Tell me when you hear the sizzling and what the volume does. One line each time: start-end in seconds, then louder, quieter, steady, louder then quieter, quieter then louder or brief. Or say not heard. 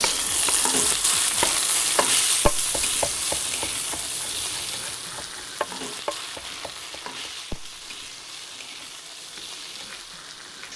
0.0-10.7 quieter.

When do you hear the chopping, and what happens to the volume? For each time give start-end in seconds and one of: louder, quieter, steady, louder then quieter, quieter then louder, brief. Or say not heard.
0.0-10.7 quieter.